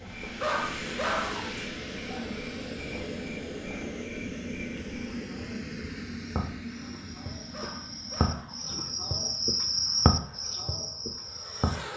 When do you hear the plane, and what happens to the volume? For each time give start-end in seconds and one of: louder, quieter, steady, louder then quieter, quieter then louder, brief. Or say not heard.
0.0-11.9 quieter.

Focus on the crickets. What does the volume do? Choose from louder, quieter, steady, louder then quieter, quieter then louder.
louder.